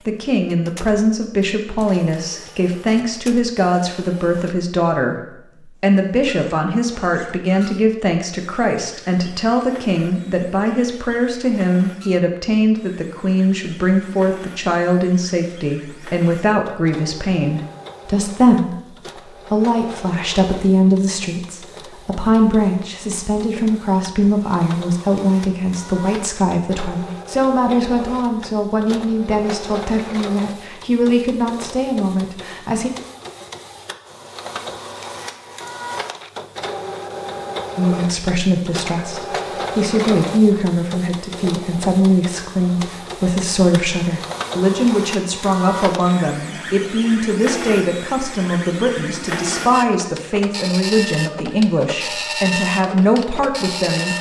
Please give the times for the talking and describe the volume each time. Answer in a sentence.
The talking can be heard from 0.1 to 5.2 s, at a steady volume; from 5.8 to 32.9 s, at a steady volume; and from 37.8 to 54.1 s, at a steady volume.